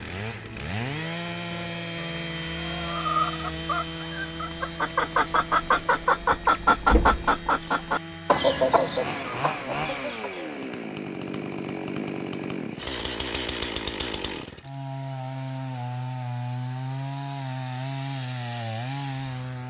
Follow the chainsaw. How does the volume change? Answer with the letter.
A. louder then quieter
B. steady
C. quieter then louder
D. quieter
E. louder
C.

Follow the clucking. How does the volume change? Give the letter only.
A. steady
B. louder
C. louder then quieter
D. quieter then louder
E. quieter
C.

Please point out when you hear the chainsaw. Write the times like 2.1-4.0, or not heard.
0.0-19.6.